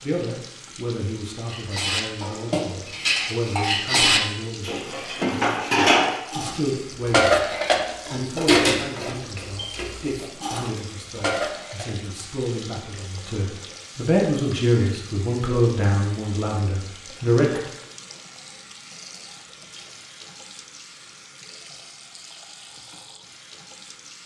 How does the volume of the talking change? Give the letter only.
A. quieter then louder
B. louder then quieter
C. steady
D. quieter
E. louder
E.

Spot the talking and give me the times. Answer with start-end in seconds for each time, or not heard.
0.0-17.6.